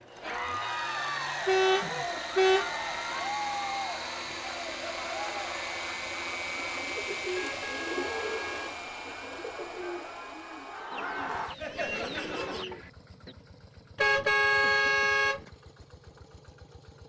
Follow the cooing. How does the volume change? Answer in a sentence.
The loudness of the cooing goes down, then up.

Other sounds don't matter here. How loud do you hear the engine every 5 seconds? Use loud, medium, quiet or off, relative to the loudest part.
loud, loud, quiet, quiet.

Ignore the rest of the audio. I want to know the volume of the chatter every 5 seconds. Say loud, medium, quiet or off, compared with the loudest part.
loud, medium, loud, off.